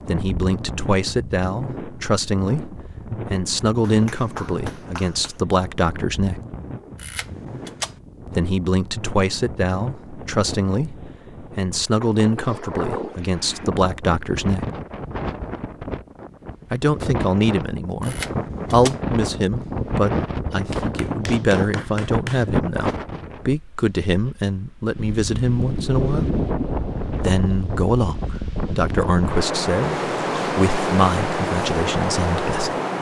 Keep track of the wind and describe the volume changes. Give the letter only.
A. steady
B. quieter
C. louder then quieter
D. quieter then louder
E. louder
E.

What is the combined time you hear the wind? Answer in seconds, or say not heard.
33 s.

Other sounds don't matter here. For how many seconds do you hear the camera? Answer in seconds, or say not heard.
2 s.